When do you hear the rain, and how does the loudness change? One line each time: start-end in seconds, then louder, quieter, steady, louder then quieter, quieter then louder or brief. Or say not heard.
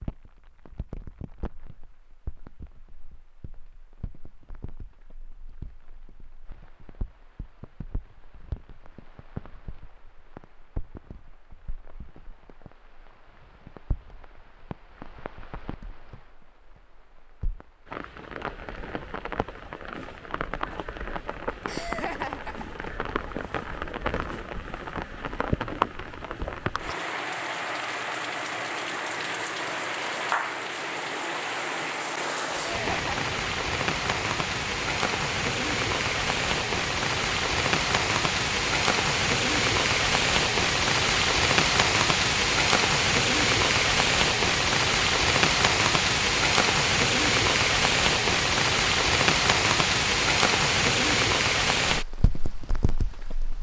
0.0-53.5 louder.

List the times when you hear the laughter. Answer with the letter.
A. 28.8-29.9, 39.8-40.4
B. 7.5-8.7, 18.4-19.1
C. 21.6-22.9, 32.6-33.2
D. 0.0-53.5
C.